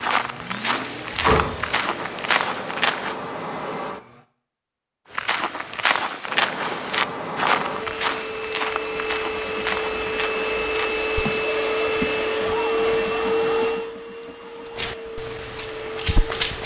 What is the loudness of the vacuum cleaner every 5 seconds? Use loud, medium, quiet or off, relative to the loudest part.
medium, medium, loud, medium.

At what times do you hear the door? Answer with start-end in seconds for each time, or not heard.
1.1-1.8.